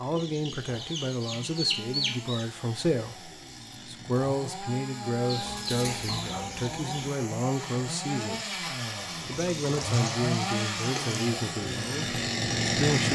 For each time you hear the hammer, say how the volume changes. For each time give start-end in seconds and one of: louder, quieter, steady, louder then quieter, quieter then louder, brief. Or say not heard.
not heard.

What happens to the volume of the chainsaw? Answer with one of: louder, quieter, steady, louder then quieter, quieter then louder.
louder.